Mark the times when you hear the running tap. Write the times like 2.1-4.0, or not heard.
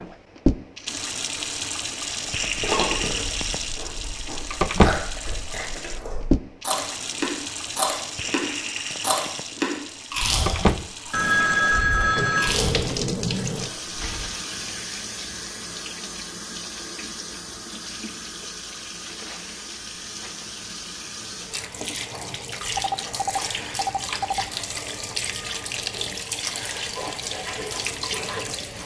0.0-28.8.